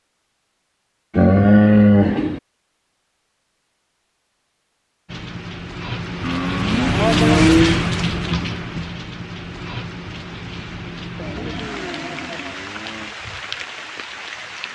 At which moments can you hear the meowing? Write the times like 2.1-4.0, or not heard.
not heard.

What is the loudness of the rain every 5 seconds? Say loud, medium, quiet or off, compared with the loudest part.
off, loud, medium.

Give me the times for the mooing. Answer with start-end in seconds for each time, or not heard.
1.1-2.4, 6.2-7.8, 11.2-13.2.